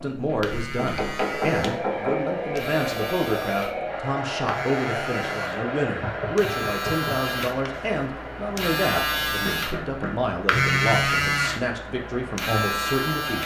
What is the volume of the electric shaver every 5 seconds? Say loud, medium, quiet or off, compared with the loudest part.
medium, medium, loud.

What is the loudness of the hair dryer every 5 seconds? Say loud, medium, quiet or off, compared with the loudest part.
loud, loud, medium.